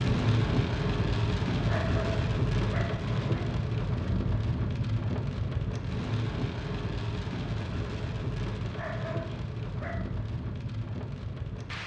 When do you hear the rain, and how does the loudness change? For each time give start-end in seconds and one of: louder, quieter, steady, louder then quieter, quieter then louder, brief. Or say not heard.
0.0-11.8 quieter.